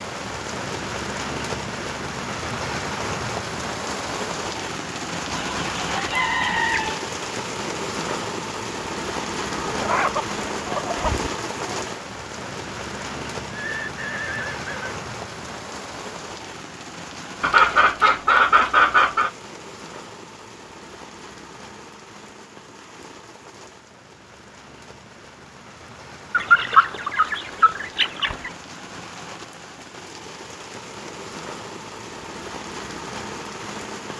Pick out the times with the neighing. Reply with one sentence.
You can hear the neighing from 13.6 to 15.0 s.